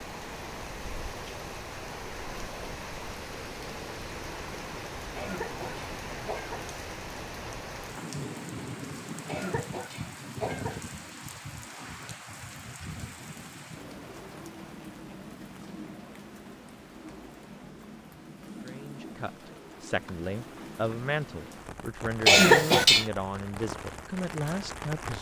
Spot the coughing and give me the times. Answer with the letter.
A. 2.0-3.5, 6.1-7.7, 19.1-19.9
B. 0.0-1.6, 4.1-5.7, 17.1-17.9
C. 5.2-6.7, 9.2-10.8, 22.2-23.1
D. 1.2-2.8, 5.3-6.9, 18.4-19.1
C.